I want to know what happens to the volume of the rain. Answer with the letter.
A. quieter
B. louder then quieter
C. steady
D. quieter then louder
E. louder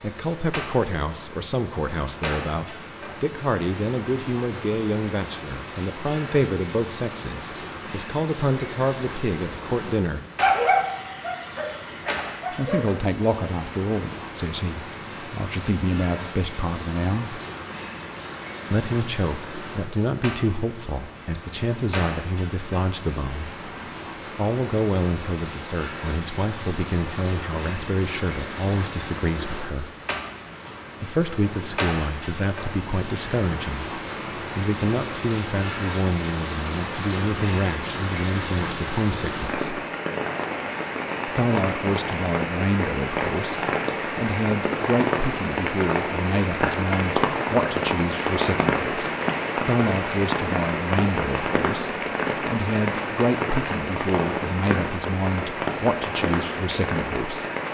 E.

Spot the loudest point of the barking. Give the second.
11 s.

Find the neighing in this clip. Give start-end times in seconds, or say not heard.
not heard.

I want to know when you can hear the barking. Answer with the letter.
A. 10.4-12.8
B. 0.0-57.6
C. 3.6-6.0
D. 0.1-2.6
A.